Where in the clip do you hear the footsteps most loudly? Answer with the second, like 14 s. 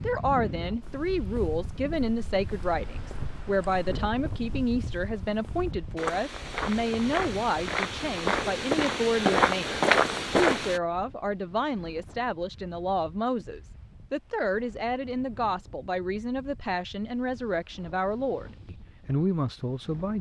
10 s.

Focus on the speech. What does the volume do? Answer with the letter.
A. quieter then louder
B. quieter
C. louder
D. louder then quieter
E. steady
E.